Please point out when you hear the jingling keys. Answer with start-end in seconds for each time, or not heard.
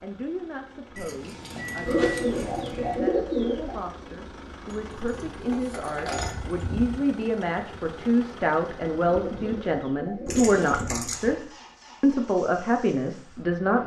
0.9-3.0, 4.7-6.6, 10.2-11.3.